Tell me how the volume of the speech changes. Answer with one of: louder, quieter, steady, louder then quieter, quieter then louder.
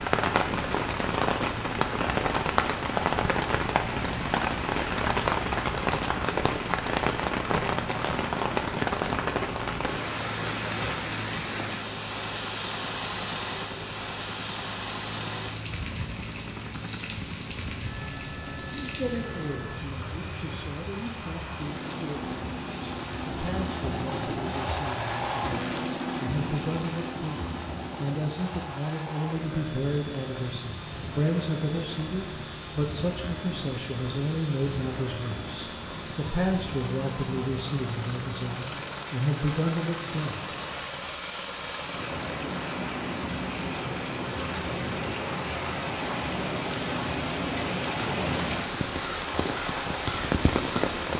louder.